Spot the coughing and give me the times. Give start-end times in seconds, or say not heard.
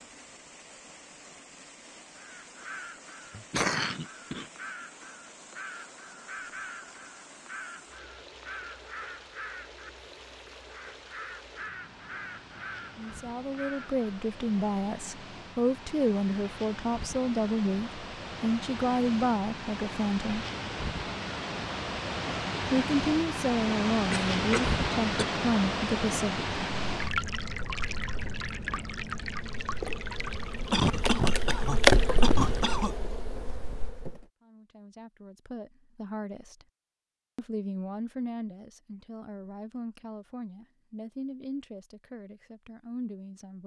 3.3-4.5, 24.1-25.2, 30.7-33.0.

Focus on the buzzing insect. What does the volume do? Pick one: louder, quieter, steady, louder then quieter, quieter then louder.
louder then quieter.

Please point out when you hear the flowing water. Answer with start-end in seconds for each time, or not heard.
0.0-32.9.